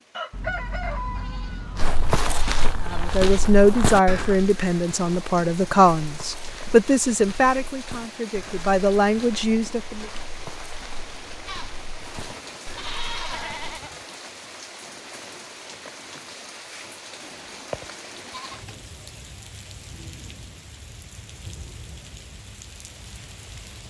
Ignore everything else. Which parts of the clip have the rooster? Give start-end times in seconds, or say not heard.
0.1-1.9.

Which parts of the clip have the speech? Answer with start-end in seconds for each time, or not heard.
2.9-10.1.